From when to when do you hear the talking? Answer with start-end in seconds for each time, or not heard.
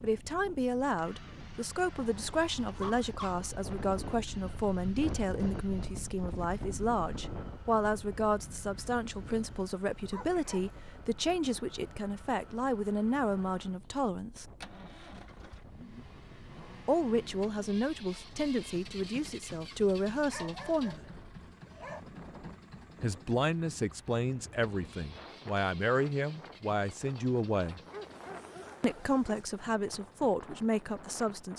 0.0-14.4, 16.9-21.1, 23.0-27.8, 28.8-31.5.